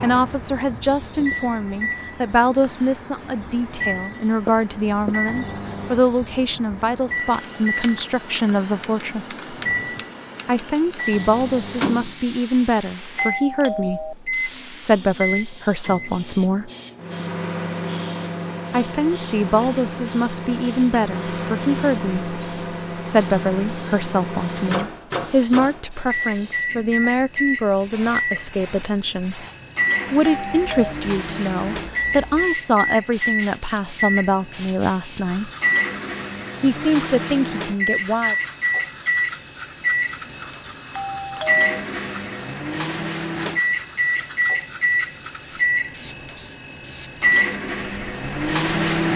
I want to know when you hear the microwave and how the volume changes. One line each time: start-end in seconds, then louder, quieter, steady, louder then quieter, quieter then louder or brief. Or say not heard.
0.0-49.1 louder.